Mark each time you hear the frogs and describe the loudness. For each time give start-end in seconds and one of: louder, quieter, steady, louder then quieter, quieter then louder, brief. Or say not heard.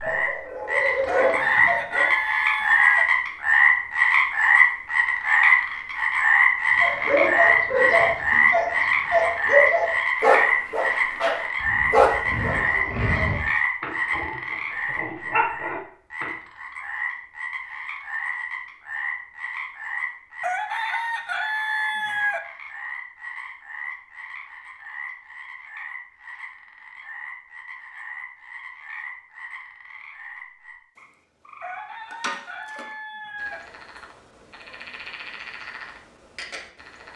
0.0-37.1 quieter.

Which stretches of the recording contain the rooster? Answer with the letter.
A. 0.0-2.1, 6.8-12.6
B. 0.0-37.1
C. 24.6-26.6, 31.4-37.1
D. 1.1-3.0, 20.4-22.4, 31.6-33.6
D.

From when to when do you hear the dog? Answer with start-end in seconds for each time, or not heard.
0.0-2.1, 6.8-12.6.